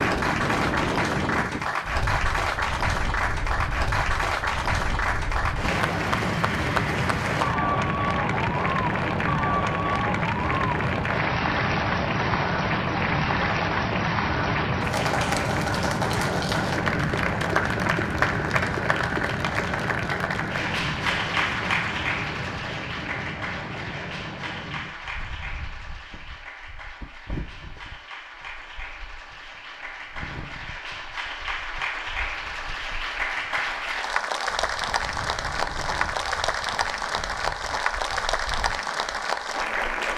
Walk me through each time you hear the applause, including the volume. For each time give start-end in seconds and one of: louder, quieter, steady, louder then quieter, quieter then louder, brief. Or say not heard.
0.0-40.1 quieter then louder.